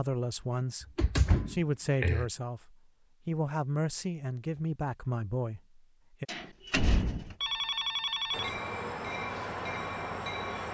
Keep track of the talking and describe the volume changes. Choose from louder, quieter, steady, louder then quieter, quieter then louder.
steady.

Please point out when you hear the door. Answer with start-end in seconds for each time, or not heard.
0.8-2.3, 6.2-7.3.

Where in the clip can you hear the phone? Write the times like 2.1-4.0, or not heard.
7.4-8.6.